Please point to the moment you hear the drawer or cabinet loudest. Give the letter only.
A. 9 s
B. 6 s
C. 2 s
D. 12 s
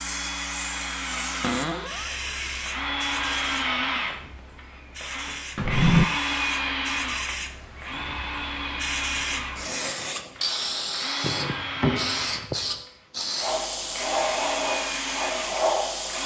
B.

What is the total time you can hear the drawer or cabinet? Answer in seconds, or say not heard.
3 s.